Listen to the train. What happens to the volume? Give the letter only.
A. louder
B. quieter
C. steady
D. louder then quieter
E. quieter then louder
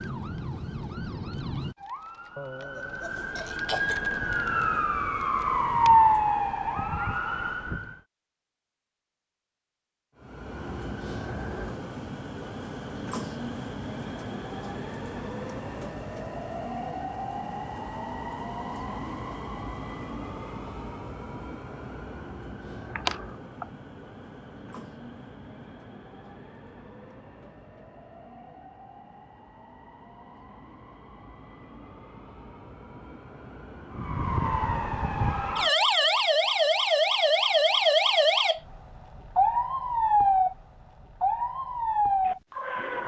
B.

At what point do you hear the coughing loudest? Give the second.
23 s.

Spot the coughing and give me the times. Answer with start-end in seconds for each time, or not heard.
2.4-4.1, 22.9-23.6.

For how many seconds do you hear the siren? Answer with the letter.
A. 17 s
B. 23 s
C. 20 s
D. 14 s
A.